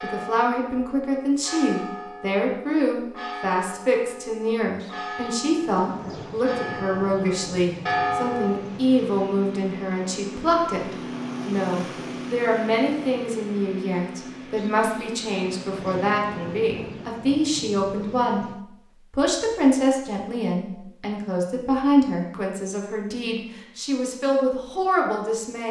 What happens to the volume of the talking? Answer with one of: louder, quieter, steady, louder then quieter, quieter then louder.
steady.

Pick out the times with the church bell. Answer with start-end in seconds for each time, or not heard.
0.0-8.6.